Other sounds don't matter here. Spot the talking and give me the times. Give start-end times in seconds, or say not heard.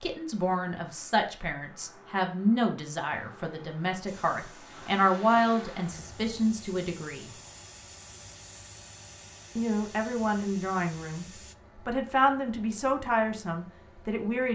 0.0-7.3, 9.6-14.4.